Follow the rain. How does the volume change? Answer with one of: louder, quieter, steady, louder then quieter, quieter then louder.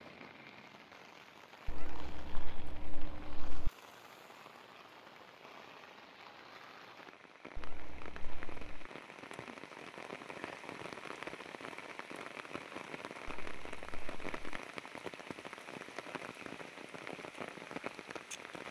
louder.